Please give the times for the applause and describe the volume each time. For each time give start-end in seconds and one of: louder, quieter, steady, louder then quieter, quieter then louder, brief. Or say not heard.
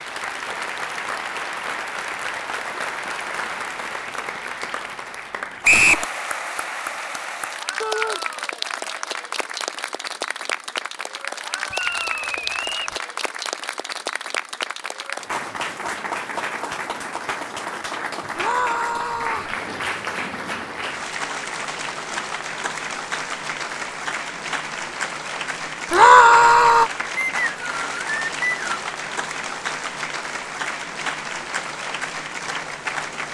0.0-33.3 steady.